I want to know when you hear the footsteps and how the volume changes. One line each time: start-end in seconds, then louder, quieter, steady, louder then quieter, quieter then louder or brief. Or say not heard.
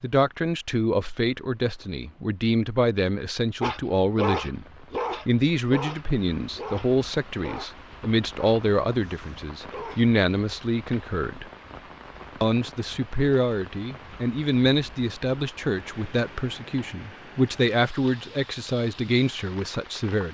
not heard.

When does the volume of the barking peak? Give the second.
4 s.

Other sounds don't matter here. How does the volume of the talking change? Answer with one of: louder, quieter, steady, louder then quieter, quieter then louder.
steady.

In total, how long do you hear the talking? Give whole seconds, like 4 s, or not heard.
19 s.